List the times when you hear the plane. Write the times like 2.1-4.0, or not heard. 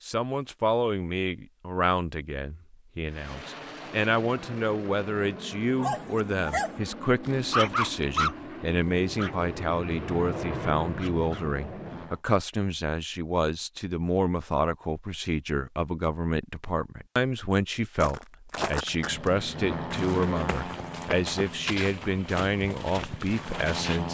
3.0-12.2, 18.9-24.0.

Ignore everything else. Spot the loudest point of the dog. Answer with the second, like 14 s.
8 s.